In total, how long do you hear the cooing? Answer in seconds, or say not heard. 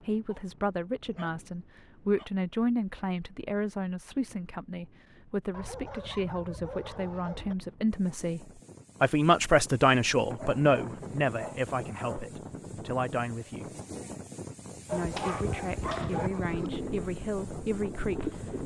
2 s.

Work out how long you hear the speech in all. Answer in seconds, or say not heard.
17 s.